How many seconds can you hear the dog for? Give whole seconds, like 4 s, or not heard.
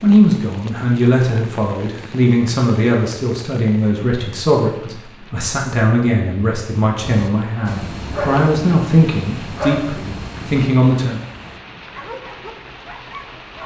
7 s.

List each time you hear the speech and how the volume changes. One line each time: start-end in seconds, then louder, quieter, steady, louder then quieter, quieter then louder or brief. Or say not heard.
0.0-11.2 steady.